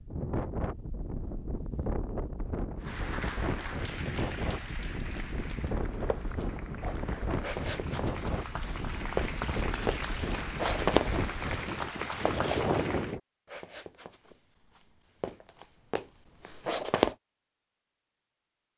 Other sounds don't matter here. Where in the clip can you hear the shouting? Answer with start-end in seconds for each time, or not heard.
not heard.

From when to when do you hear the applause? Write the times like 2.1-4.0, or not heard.
2.8-13.2.